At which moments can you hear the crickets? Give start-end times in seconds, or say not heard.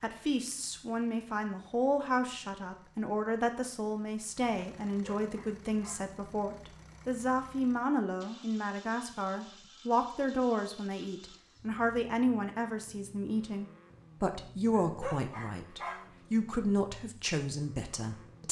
not heard.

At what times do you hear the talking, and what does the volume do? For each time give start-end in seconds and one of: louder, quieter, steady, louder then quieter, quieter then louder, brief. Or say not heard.
0.0-18.4 steady.